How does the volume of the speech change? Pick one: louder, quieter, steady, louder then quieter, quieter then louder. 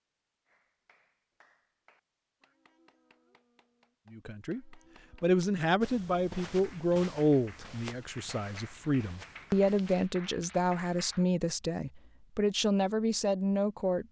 steady.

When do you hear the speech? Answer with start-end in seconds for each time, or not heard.
4.1-14.0.